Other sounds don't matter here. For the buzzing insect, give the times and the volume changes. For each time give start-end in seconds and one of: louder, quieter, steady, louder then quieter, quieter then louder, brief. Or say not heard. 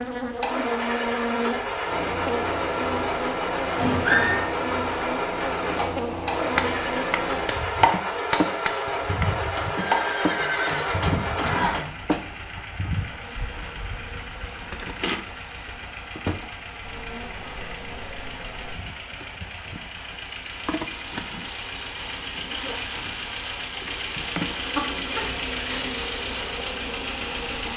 0.0-27.7 quieter.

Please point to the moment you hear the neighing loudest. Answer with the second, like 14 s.
4 s.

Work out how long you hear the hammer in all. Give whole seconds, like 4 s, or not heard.
6 s.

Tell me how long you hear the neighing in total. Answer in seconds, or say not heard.
4 s.